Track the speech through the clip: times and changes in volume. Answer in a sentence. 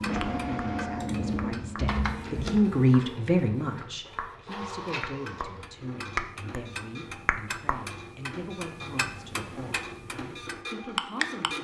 You can hear the speech from 0.0 to 11.6 s, getting louder then quieter.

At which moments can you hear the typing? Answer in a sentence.
The typing can be heard from 0.0 to 2.9 s.